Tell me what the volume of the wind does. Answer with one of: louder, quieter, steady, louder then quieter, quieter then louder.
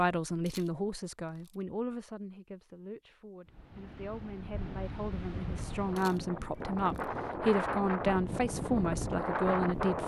louder.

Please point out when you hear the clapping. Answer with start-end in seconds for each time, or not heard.
not heard.